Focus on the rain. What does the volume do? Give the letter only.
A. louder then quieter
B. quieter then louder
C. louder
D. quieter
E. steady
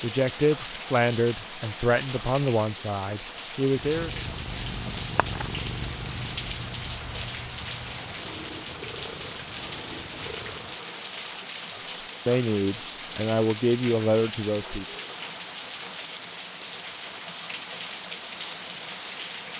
E.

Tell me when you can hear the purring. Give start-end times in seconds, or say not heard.
3.8-10.8.